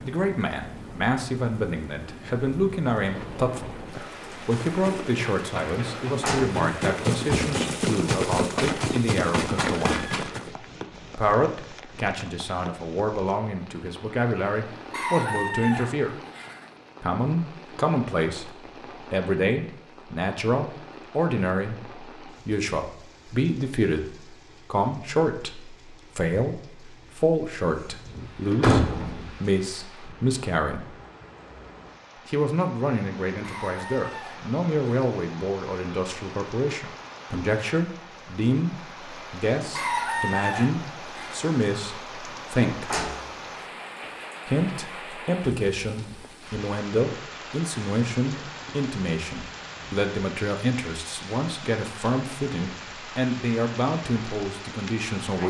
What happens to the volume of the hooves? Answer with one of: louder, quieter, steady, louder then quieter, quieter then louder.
louder.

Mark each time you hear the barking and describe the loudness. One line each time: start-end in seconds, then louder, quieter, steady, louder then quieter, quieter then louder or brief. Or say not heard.
not heard.